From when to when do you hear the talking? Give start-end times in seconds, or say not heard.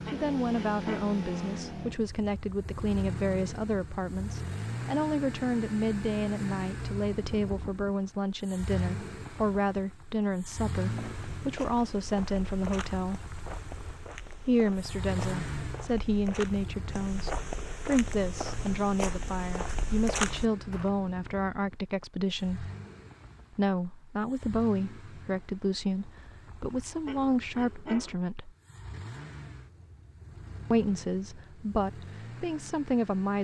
0.1-13.2, 14.4-22.7, 23.6-28.5, 30.7-33.3.